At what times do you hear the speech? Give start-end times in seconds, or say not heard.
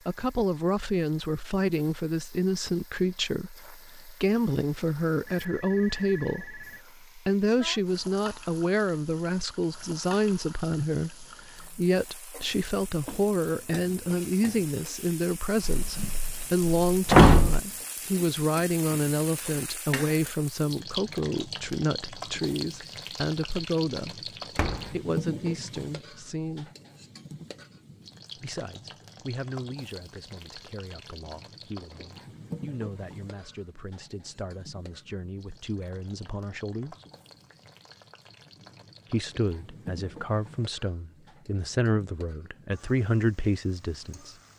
0.1-26.7, 28.4-37.0, 39.1-44.4.